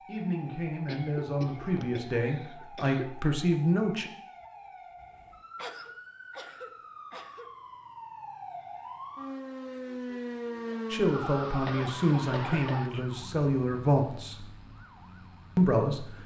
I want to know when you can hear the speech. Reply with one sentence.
You can hear the speech from 0.1 to 4.1 s, from 10.9 to 14.4 s and from 15.6 to 16.2 s.